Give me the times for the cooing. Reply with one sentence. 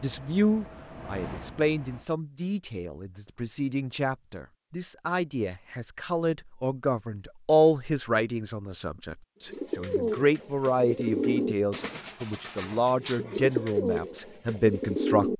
The cooing can be heard from 9.5 to 15.3 s.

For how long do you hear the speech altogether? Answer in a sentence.
The speech can be heard for 15 seconds in total.